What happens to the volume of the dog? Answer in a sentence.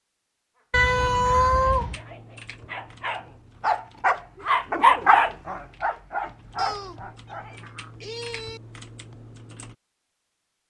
The volume of the dog goes up, then down.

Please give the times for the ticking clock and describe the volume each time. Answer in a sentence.
You can't hear the ticking clock here.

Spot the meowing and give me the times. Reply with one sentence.
You can hear the meowing from 0.7 to 2.0 s and from 6.5 to 8.6 s.